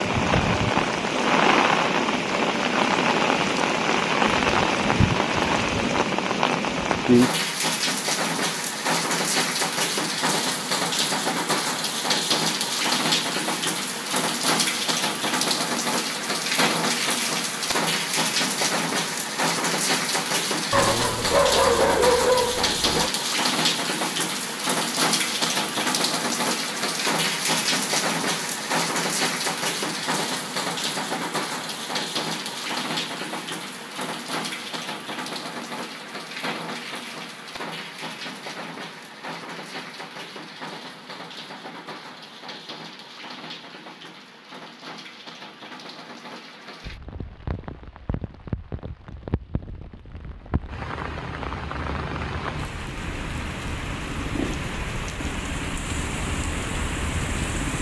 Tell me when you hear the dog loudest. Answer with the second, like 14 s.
22 s.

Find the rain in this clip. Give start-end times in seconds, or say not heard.
0.0-57.7.